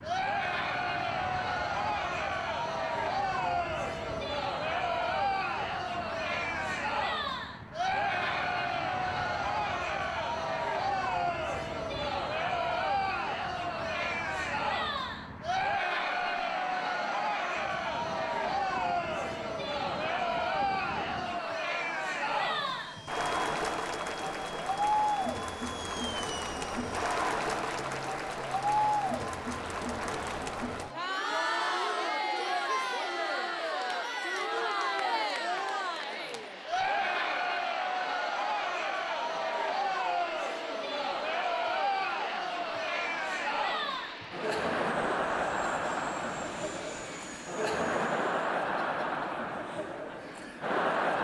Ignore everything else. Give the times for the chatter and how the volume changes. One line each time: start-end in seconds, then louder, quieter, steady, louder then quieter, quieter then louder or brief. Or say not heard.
0.0-51.1 steady.